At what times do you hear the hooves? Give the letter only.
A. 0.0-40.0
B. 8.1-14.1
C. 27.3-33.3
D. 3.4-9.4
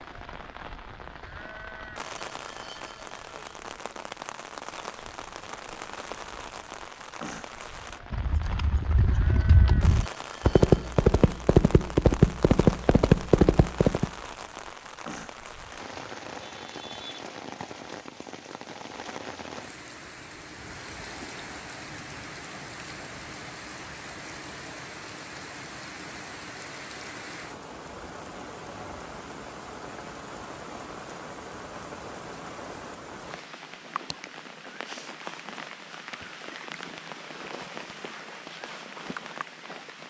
B.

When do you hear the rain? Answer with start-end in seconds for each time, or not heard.
0.0-40.0.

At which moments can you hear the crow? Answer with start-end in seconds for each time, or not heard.
not heard.